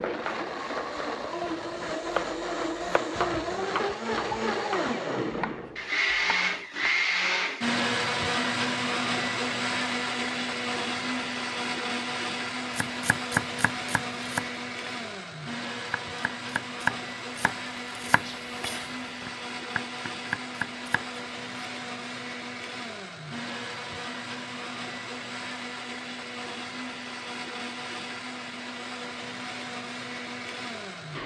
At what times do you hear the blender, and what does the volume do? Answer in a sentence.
You can hear the blender from 0.0 to 31.2 s, getting quieter.